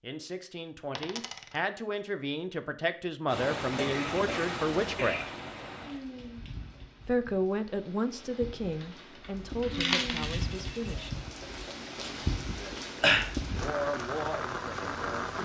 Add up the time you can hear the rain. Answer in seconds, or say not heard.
12 s.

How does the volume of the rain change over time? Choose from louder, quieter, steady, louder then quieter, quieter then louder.
quieter then louder.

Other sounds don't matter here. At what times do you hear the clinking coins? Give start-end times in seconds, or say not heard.
0.9-1.6, 8.8-11.1.